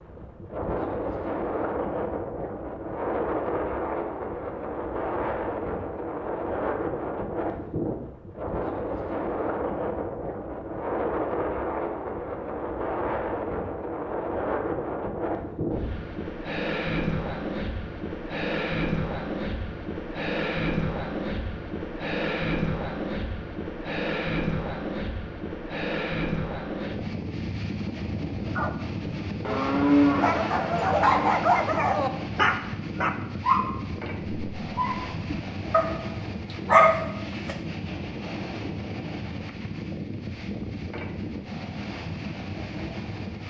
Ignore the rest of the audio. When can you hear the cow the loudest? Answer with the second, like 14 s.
30 s.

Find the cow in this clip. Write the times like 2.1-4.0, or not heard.
29.4-31.4.